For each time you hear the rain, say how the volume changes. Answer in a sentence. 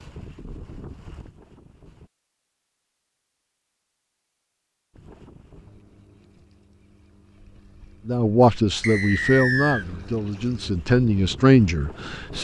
You can't hear the rain here.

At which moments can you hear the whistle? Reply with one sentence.
You can hear the whistle from 8.8 to 9.8 s.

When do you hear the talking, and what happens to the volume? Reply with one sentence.
The talking can be heard from 8.1 to 12.3 s, getting quieter then louder.